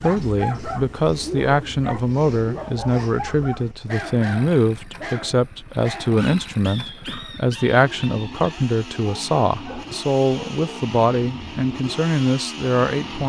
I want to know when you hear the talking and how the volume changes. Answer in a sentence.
You can hear the talking from 0.0 to 13.2 s, at a steady volume.